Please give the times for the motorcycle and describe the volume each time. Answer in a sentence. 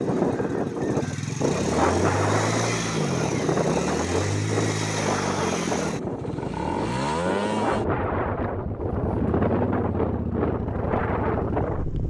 You can hear the motorcycle from 0.0 to 12.0 s, at a steady volume.